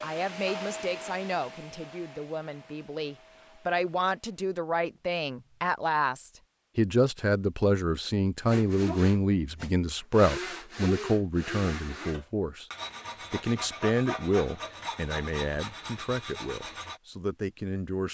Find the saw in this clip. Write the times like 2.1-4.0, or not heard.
8.4-17.0.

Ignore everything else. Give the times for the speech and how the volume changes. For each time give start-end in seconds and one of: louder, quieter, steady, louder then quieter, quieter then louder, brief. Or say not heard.
0.0-12.7 louder
13.3-18.0 quieter.